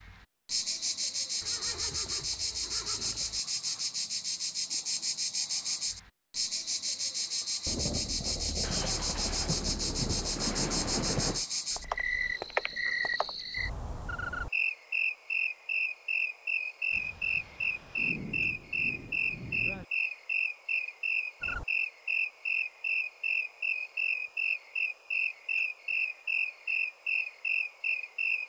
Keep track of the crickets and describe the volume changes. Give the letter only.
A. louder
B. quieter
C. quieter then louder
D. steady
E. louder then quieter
D.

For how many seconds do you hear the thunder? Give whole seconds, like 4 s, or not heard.
7 s.